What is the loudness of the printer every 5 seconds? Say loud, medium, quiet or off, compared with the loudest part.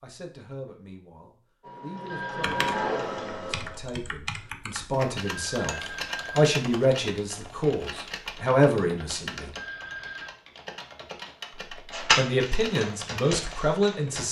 loud, off, loud.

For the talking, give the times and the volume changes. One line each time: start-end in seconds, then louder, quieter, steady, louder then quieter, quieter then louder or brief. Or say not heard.
0.0-9.5 louder
11.9-14.2 brief.